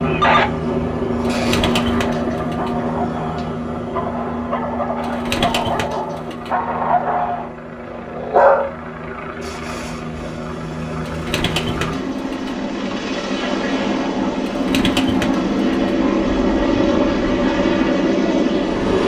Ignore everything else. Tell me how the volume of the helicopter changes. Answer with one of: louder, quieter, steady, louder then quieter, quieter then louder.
quieter then louder.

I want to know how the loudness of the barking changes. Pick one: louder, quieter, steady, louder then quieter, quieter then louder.
louder then quieter.